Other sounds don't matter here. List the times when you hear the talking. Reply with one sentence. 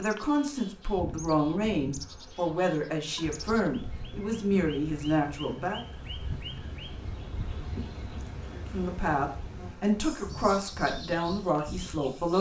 You can hear the talking from 0.0 to 5.8 s and from 8.5 to 12.3 s.